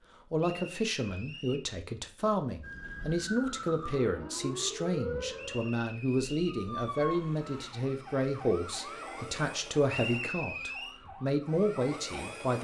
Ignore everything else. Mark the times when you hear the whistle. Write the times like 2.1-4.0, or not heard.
0.4-1.7, 5.3-6.6, 9.8-11.0.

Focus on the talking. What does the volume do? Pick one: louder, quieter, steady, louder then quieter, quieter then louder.
steady.